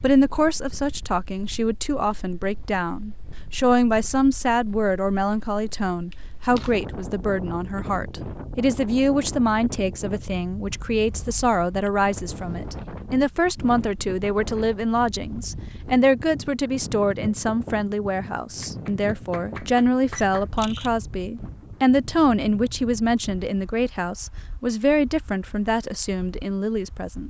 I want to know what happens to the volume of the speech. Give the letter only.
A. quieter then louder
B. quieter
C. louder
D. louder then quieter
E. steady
E.